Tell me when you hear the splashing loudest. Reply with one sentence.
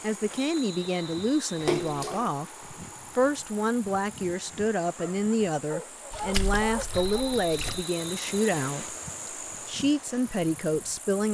The loudest moment of the splashing is at 2 seconds.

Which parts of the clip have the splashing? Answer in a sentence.
The splashing can be heard from 1.6 to 2.3 s and from 6.1 to 7.8 s.